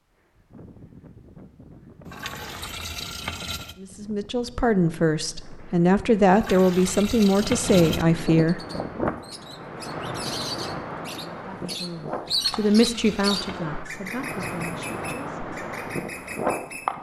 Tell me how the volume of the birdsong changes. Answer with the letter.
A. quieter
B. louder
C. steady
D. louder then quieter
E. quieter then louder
D.